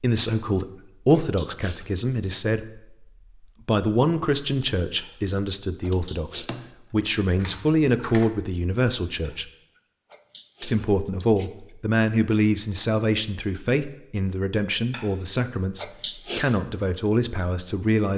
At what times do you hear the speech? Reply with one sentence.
You can hear the speech from 0.0 to 3.0 s, from 3.6 to 9.5 s and from 10.6 to 18.1 s.